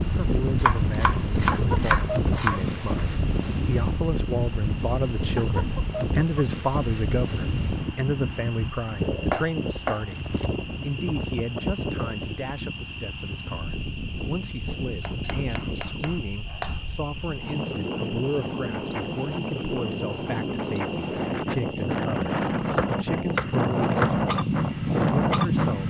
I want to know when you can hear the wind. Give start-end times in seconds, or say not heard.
0.0-25.8.